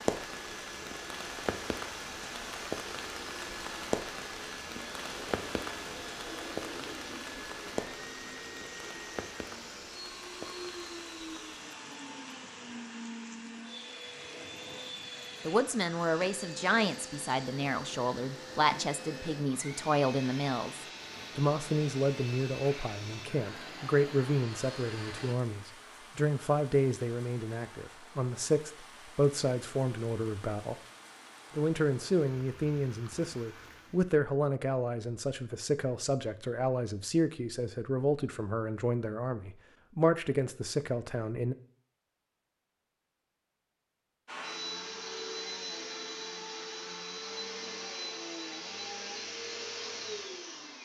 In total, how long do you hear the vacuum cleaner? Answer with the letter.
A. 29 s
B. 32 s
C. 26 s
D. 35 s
B.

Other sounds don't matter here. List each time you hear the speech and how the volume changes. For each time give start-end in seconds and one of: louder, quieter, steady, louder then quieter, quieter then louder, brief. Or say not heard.
15.4-30.8 steady
31.6-41.5 steady.